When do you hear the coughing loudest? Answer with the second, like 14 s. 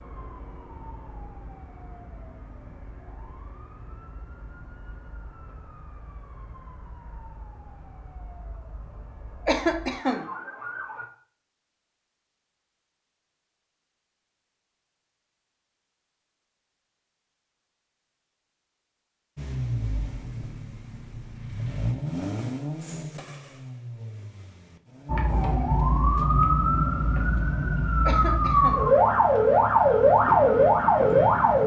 10 s.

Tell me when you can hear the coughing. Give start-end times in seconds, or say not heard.
9.4-10.2, 28.1-28.9.